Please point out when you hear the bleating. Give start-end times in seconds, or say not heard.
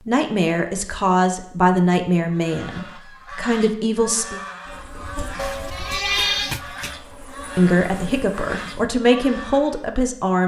5.3-7.0.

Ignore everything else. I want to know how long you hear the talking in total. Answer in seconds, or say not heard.
7 s.